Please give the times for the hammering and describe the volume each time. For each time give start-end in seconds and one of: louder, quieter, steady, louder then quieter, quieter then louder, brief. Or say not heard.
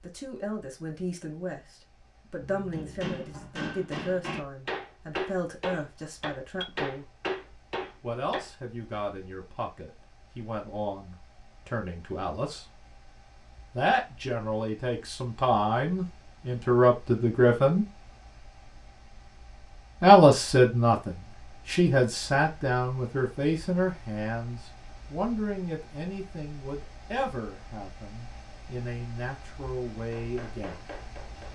2.4-8.5 steady
30.0-31.5 brief.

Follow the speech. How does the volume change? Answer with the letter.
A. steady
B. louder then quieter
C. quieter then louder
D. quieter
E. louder
B.